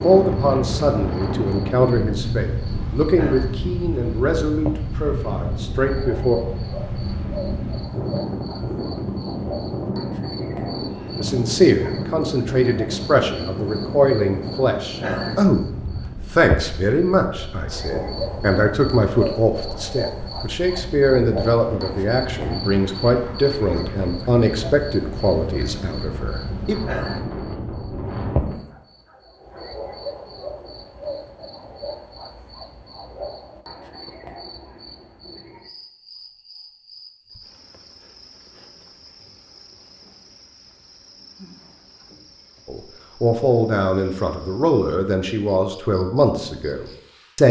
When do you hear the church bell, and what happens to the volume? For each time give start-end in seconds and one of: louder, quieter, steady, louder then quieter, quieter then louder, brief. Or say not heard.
not heard.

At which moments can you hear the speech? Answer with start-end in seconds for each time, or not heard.
0.0-6.4, 11.2-15.6, 16.3-26.8, 42.6-47.4.